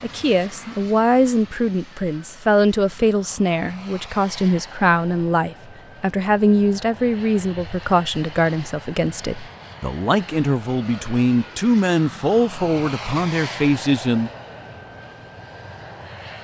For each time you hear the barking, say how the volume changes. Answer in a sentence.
You can't hear the barking here.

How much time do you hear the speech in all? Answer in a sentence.
You can hear the speech for 14 seconds altogether.